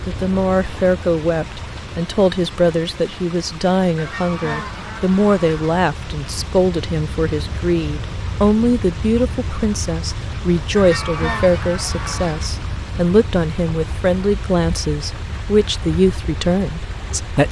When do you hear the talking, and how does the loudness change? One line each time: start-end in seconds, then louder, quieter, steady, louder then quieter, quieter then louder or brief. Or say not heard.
0.1-17.4 steady.